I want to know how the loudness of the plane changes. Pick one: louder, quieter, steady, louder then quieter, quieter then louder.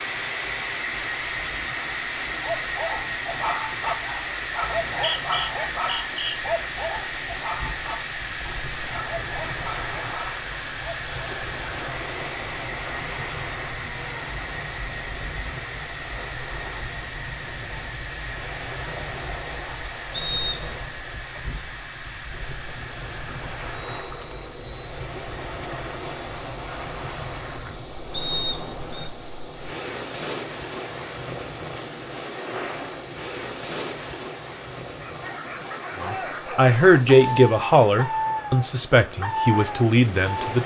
quieter.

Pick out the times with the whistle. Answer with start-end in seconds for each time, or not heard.
4.6-6.3, 20.1-20.8, 28.1-29.1.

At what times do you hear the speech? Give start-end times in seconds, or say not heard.
36.0-40.6.